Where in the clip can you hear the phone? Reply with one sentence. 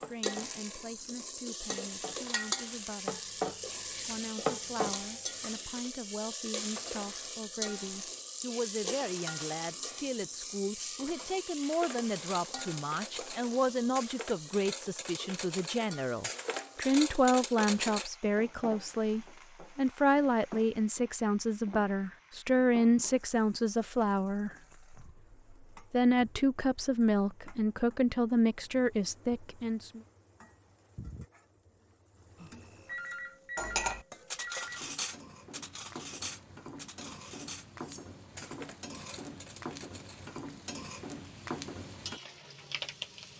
You can hear the phone from 32.4 to 34.9 s.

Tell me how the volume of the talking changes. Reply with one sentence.
The loudness of the talking goes up.